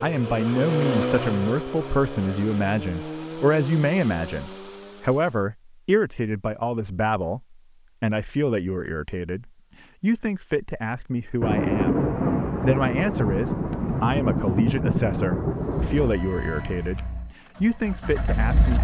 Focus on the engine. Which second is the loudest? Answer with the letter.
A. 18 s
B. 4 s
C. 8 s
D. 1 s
D.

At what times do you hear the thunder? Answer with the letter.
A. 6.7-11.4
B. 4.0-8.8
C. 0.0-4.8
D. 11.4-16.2
D.